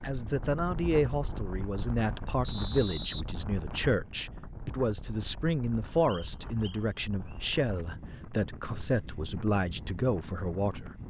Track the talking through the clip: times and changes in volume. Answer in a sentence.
You can hear the talking from 0.0 to 10.9 s, at a steady volume.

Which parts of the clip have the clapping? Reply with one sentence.
You can't hear the clapping here.